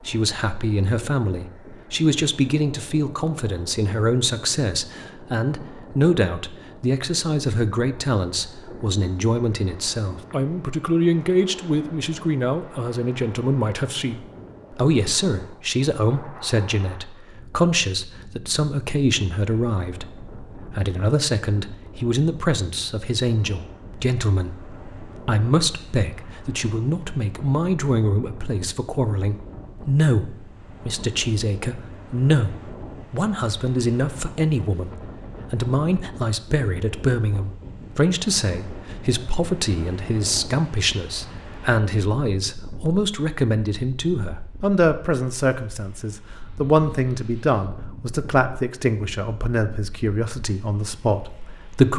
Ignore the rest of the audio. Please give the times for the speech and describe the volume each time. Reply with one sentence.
The speech can be heard from 0.1 to 51.9 s, at a steady volume.